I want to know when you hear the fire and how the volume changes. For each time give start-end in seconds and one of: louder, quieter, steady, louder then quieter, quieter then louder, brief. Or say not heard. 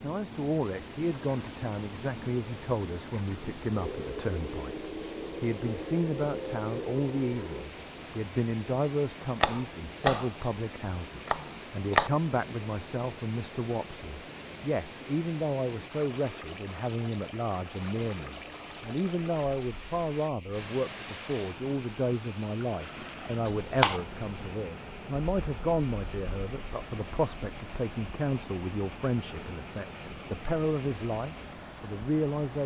not heard.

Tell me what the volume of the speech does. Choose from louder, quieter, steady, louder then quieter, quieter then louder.
steady.